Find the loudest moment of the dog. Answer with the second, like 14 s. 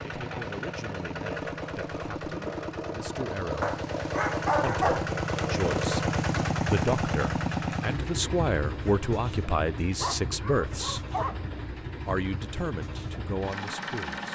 5 s.